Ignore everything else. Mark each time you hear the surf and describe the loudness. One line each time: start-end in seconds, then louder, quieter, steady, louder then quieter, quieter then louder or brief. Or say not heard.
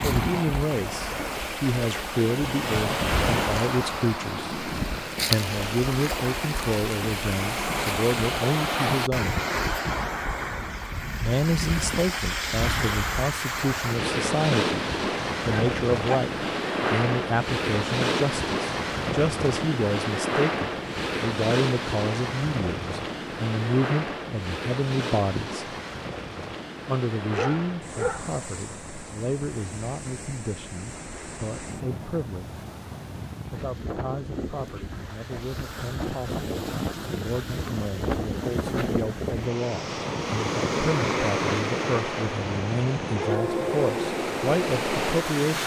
0.0-45.6 quieter then louder.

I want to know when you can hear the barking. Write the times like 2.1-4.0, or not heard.
15.4-16.1, 27.3-28.3.